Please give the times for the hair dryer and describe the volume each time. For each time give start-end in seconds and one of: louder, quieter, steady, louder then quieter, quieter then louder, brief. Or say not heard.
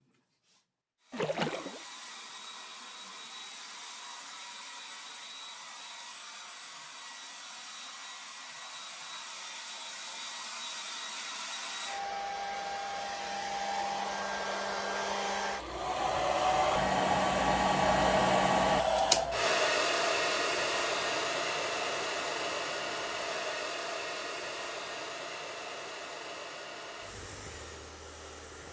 0.1-28.6 louder then quieter.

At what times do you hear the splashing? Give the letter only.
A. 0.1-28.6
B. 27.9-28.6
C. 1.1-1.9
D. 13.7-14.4
C.